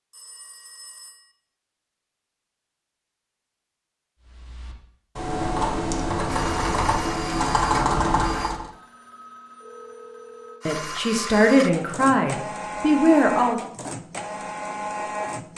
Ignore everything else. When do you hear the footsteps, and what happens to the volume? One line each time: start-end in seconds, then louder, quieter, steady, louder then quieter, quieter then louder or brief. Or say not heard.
not heard.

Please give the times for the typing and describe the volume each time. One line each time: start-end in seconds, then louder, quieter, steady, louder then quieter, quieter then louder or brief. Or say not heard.
4.2-8.7 louder.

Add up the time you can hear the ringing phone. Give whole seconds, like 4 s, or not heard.
3 s.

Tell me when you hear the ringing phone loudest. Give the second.
10 s.